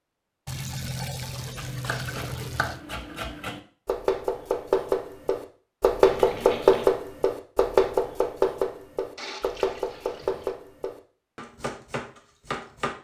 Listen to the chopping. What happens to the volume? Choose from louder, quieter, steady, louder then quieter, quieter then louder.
louder then quieter.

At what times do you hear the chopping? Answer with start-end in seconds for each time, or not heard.
1.6-12.9.